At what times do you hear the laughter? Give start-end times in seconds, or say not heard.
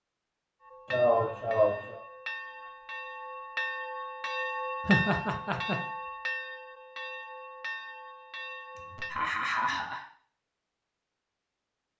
0.9-2.0, 4.8-5.8, 8.8-10.0.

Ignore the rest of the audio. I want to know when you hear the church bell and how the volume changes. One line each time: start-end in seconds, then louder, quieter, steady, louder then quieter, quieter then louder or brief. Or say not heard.
0.6-9.2 louder then quieter.